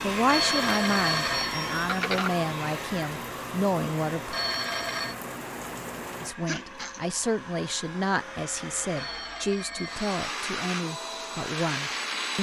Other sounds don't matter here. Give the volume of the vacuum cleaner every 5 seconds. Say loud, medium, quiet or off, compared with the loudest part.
loud, medium, loud.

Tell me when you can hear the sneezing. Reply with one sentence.
The sneezing can be heard from 6.5 to 7.0 s.